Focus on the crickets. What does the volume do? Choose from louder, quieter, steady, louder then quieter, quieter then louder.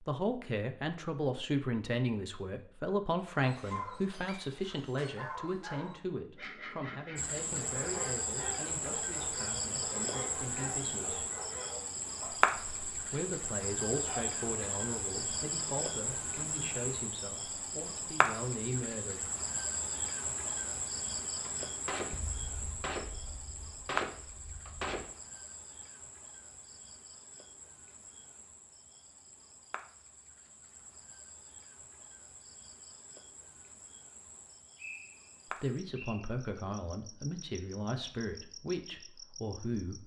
quieter.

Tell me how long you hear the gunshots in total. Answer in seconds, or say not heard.
4 s.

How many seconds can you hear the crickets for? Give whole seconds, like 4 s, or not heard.
33 s.